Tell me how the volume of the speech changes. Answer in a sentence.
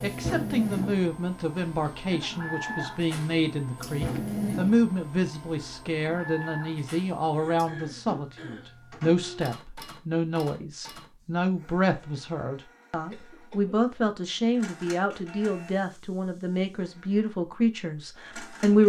The volume of the speech stays about the same.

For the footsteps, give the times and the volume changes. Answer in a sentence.
You can't hear the footsteps here.